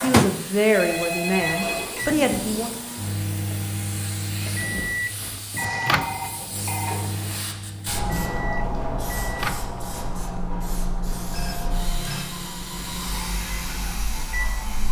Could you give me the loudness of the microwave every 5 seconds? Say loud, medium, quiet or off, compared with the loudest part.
loud, loud, medium.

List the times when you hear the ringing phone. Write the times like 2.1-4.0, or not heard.
0.7-1.9, 5.5-7.4, 11.3-12.3.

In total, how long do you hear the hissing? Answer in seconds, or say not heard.
15 s.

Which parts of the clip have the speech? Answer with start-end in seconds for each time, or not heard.
0.0-2.7.